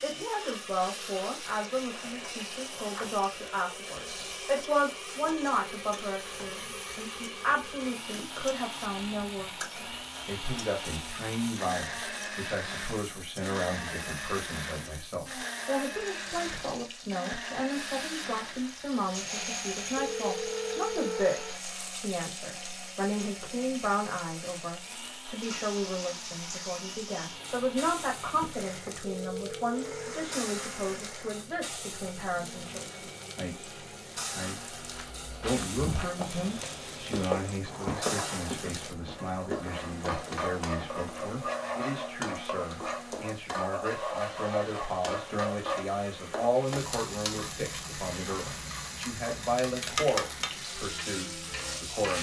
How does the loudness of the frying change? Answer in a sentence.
The volume of the frying goes up.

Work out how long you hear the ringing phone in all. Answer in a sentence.
The ringing phone can be heard for 3 seconds in total.